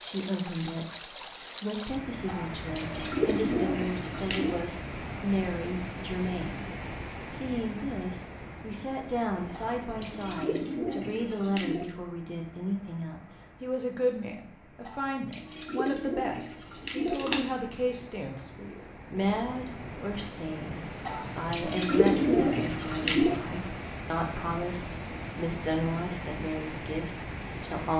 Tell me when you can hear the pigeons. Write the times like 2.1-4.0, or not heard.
2.2-4.6, 9.5-11.9, 14.8-17.4, 21.1-23.4.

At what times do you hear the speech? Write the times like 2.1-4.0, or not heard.
0.0-6.7, 7.3-27.9.